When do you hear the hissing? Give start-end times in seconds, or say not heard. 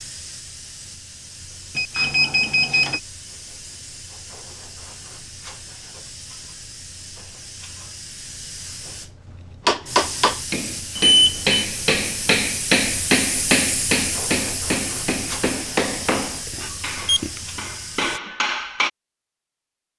0.0-18.2.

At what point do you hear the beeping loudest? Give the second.
11 s.